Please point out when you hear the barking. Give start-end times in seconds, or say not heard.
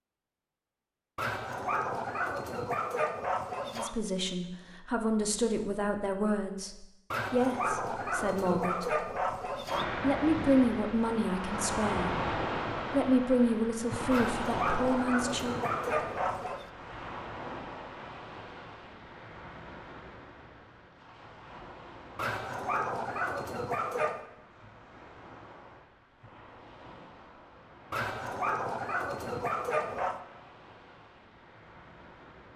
1.1-4.0, 7.1-9.8, 14.1-16.6, 22.1-24.2, 27.9-30.2.